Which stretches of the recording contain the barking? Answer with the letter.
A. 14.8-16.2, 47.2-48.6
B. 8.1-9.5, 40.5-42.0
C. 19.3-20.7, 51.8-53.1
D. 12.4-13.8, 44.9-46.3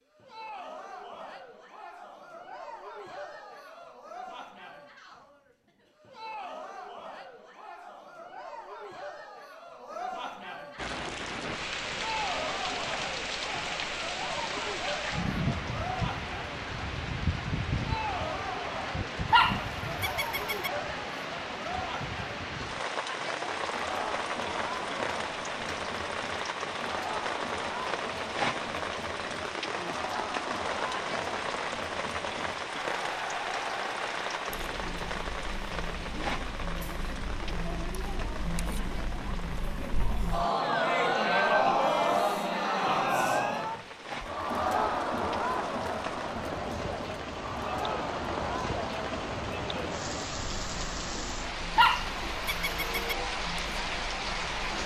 C.